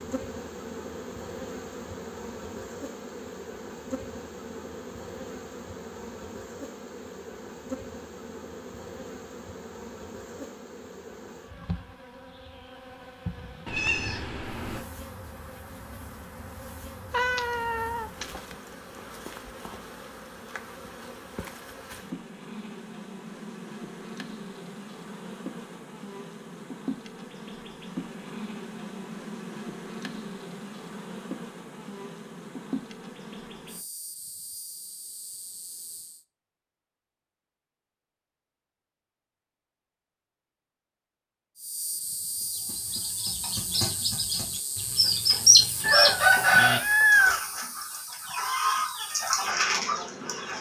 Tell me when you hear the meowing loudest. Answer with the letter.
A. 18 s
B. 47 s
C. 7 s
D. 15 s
B.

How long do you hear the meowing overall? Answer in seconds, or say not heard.
4 s.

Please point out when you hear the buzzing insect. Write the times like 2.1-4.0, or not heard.
0.0-36.2, 41.5-50.5.